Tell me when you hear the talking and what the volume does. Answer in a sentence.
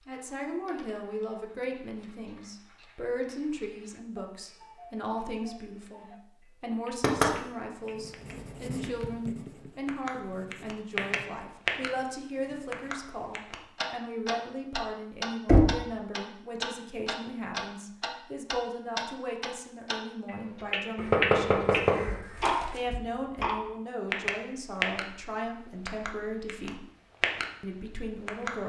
The talking can be heard from 0.1 to 26.9 s, at a steady volume; and briefly from 27.6 to 28.6 s.